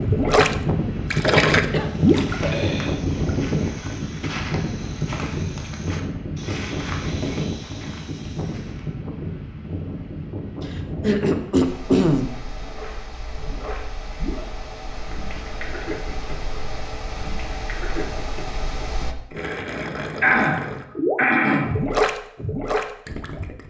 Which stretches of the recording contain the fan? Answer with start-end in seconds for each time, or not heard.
0.0-19.1.